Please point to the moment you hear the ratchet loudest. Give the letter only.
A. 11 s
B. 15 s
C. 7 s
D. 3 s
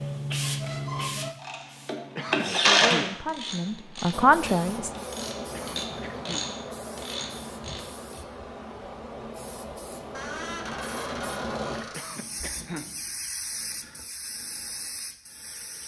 D.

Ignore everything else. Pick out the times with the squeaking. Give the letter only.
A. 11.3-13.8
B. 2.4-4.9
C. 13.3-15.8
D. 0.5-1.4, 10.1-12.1
D.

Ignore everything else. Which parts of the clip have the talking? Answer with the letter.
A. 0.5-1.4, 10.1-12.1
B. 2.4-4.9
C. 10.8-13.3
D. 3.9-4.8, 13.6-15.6
B.